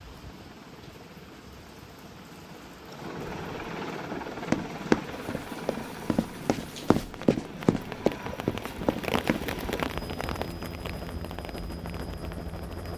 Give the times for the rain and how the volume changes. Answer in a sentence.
The rain can be heard from 0.0 to 12.9 s, getting louder then quieter.